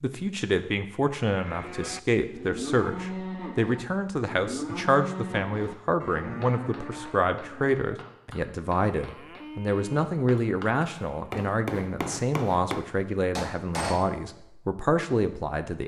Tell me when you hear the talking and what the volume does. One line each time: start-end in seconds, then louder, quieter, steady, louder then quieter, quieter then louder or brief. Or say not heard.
0.0-15.8 steady.